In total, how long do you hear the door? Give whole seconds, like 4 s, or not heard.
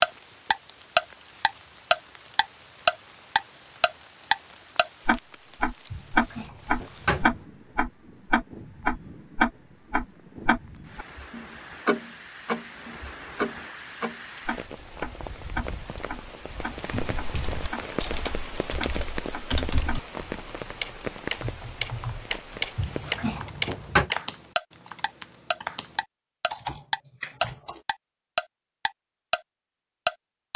3 s.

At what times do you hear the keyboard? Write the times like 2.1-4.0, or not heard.
16.9-27.8.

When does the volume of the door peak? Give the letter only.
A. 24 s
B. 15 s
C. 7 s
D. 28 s
A.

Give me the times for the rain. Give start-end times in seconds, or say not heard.
0.0-23.4.